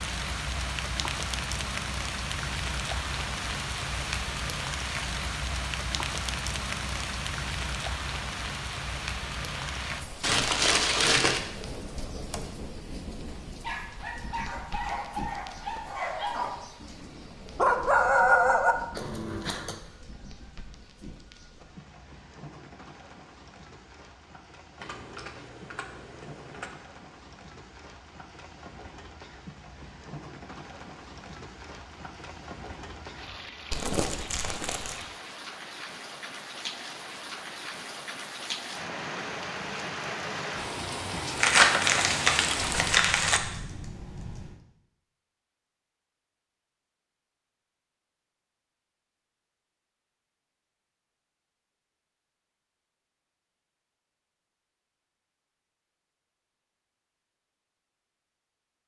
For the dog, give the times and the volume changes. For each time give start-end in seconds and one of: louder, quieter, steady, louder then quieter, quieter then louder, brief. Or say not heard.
13.4-19.8 louder.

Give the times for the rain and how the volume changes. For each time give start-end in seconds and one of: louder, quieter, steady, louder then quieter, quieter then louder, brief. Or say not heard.
0.0-43.0 quieter then louder.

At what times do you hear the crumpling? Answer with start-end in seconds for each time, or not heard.
10.2-11.4, 33.7-35.0, 41.4-43.4.